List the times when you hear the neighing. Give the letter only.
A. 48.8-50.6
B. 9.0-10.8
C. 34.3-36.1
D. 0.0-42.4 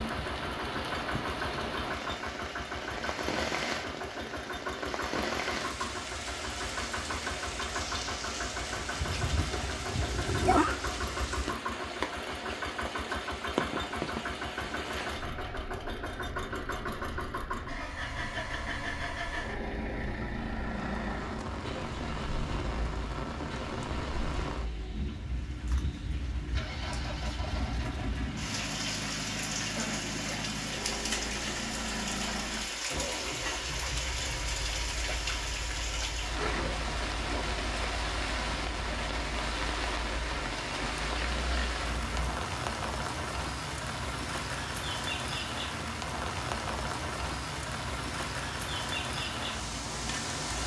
B.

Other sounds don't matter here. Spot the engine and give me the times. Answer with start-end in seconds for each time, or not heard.
0.0-42.4.